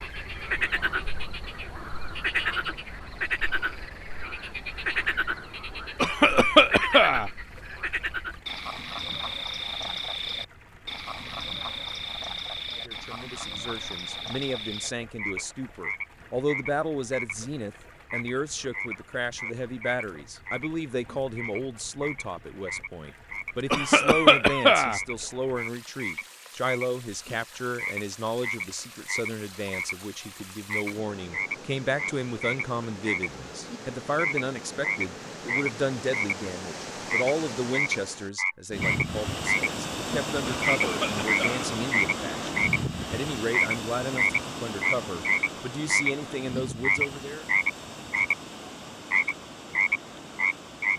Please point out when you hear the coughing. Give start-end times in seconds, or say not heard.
6.0-7.3, 23.7-25.0, 40.5-41.7.